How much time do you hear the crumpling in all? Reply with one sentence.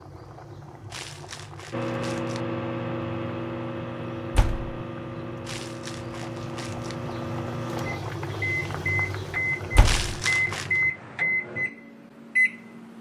The crumpling can be heard for 4 seconds in total.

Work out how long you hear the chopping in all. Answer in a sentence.
The chopping can't be heard in this clip.